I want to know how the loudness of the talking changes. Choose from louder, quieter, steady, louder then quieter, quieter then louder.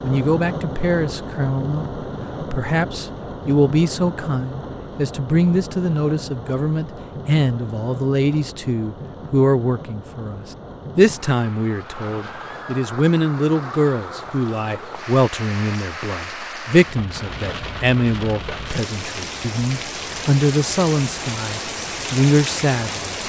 steady.